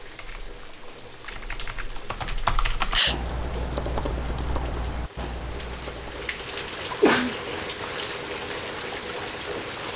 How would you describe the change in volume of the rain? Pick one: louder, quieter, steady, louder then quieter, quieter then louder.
louder.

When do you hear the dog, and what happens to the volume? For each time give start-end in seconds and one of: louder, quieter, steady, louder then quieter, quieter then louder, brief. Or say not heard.
not heard.